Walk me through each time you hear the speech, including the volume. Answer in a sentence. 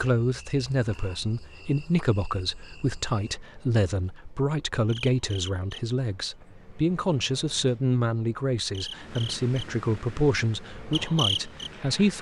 You can hear the speech from 0.0 to 12.1 s, at a steady volume.